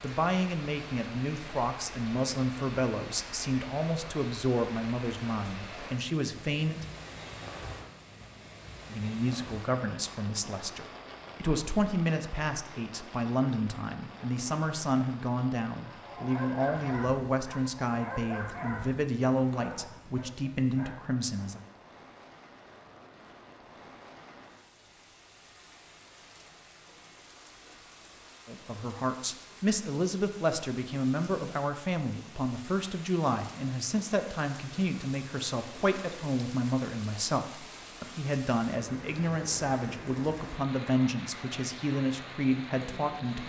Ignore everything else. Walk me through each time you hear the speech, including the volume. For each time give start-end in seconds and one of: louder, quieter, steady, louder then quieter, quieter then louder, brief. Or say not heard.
0.0-6.8 steady
8.9-21.6 steady
28.4-43.4 steady.